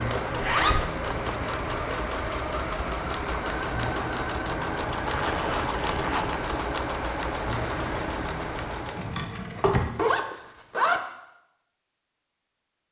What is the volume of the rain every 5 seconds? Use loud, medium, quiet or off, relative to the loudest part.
loud, loud, off.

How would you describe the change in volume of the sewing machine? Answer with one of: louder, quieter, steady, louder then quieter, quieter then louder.
steady.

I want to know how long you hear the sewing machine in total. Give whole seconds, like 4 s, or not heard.
9 s.